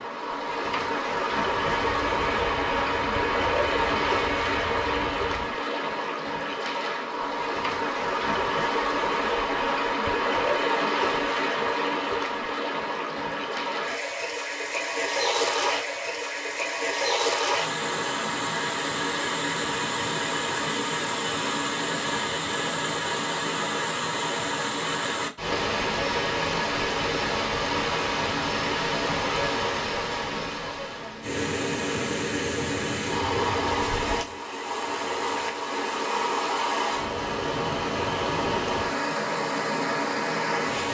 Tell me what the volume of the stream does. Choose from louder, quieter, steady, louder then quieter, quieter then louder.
steady.